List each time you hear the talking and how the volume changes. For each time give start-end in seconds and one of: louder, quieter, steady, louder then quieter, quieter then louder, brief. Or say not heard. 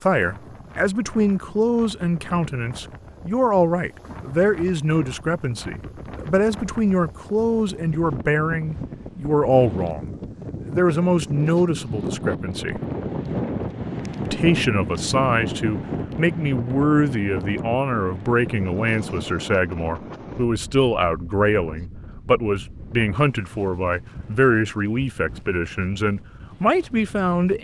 0.0-12.8 steady
14.2-27.5 steady.